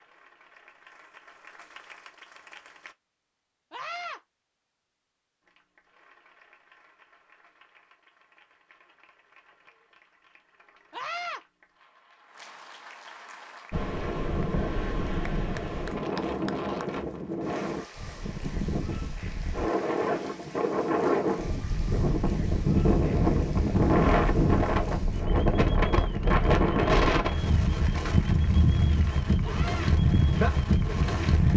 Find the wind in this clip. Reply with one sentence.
You can hear the wind from 13.7 to 31.5 s.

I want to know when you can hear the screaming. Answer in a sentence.
You can hear the screaming from 3.7 to 4.2 s, from 10.9 to 11.4 s and from 29.4 to 29.9 s.